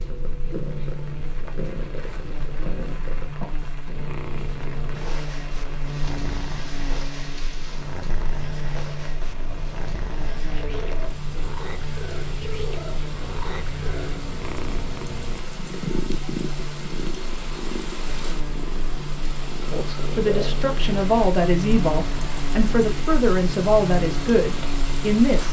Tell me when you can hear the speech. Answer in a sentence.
You can hear the speech from 19.7 to 25.4 s.